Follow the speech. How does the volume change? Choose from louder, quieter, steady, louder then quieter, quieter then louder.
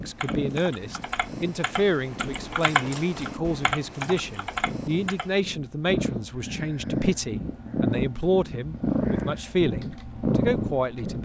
steady.